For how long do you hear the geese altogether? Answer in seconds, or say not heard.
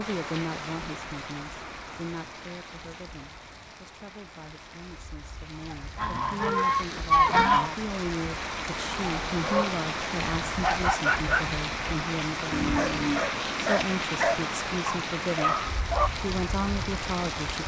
2 s.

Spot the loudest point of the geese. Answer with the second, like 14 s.
7 s.